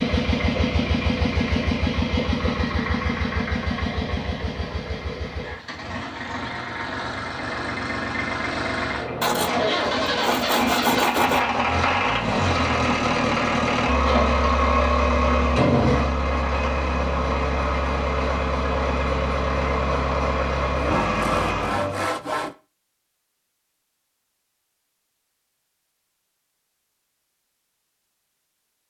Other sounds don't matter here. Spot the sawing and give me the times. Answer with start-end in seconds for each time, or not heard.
9.2-11.4, 20.8-22.6.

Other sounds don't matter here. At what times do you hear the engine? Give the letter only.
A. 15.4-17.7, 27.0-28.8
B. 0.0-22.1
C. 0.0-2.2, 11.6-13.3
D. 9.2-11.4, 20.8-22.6
B.